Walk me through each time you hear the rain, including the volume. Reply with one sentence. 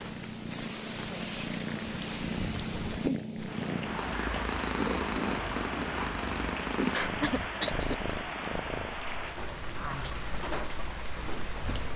You can hear the rain from 0.0 to 11.9 s, at a steady volume.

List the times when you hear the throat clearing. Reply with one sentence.
The throat clearing can be heard from 7.2 to 8.2 s.